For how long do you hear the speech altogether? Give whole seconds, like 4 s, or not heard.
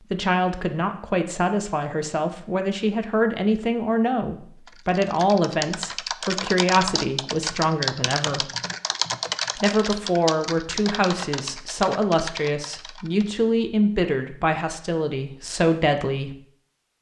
15 s.